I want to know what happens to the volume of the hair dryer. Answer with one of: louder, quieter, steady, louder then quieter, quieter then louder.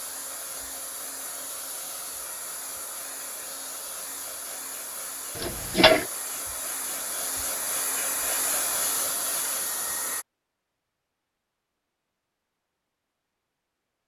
louder.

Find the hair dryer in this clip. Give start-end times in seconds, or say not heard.
0.0-10.2.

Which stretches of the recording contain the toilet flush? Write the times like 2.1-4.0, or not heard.
5.3-6.0.